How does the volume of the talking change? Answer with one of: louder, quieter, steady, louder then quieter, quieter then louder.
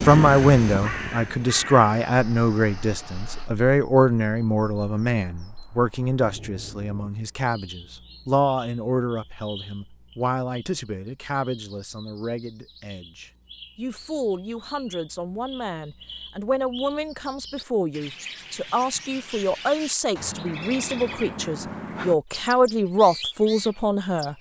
quieter then louder.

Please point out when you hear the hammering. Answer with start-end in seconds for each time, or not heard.
not heard.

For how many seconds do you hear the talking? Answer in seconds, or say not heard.
24 s.